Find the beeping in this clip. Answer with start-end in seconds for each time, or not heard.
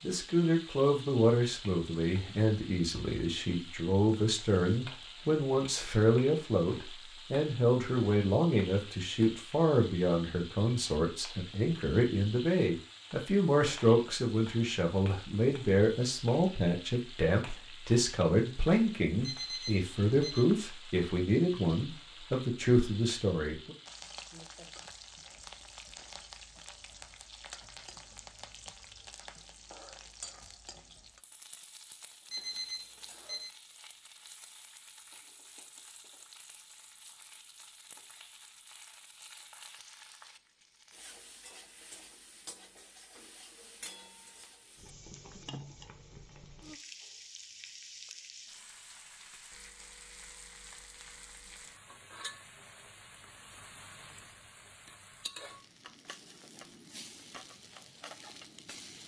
19.2-20.4, 32.3-33.5.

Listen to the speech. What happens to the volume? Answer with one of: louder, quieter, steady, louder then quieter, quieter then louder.
steady.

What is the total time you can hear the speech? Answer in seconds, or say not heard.
24 s.